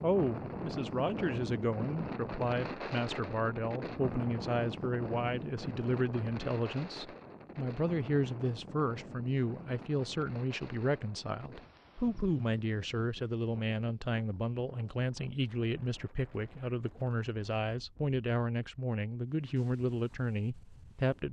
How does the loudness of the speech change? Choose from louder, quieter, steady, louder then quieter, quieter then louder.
steady.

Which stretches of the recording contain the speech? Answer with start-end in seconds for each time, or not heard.
0.0-21.2.